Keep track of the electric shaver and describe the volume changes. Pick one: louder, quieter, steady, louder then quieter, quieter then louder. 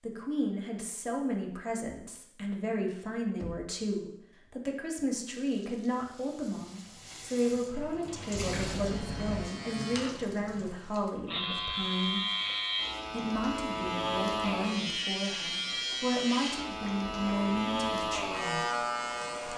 louder.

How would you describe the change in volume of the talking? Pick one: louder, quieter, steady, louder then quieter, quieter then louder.
steady.